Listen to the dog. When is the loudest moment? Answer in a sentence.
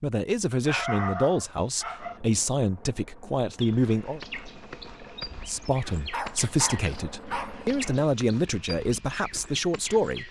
The loudest moment of the dog is at 1 second.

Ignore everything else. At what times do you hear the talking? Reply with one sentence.
The talking can be heard from 0.0 to 4.2 s and from 5.5 to 10.2 s.